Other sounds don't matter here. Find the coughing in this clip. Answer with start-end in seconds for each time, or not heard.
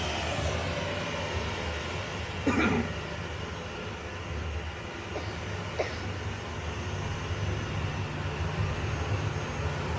2.5-2.9, 5.2-6.1.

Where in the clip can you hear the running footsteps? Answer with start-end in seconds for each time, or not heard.
not heard.